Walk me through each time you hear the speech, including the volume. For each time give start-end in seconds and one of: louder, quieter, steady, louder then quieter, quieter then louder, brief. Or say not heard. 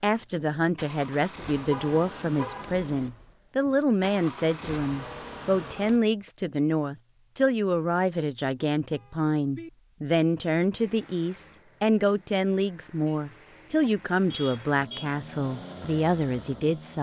0.0-16.9 steady.